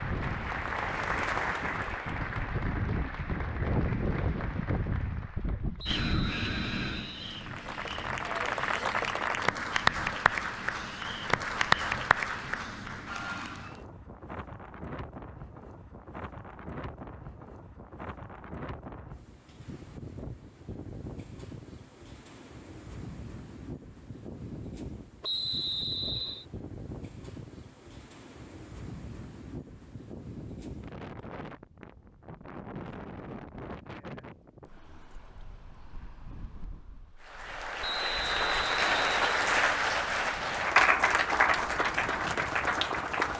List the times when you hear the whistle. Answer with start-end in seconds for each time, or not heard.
5.8-7.5, 25.2-26.4, 37.8-39.4.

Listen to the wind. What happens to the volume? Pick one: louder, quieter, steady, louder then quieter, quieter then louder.
quieter.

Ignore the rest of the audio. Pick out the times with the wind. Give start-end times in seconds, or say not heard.
0.0-43.3.